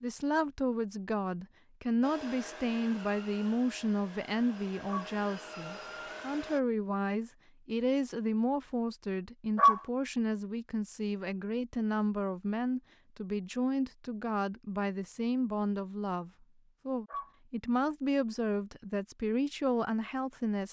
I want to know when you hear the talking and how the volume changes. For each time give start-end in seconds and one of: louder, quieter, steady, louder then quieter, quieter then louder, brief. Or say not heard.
0.0-20.6 steady.